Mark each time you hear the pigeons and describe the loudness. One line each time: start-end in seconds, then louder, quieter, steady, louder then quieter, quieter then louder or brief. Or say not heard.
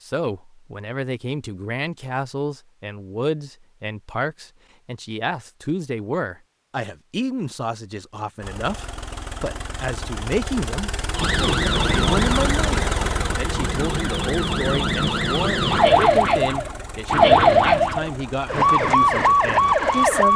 not heard.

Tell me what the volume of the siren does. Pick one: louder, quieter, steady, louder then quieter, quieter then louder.
louder.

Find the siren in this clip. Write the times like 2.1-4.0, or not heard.
11.2-20.3.